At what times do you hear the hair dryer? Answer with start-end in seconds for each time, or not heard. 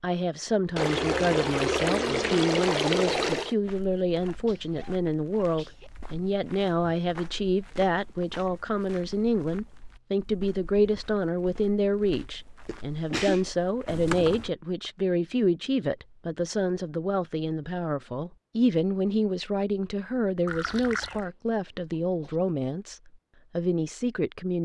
not heard.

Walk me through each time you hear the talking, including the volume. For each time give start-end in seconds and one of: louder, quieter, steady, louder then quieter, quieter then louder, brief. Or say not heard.
0.0-24.6 steady.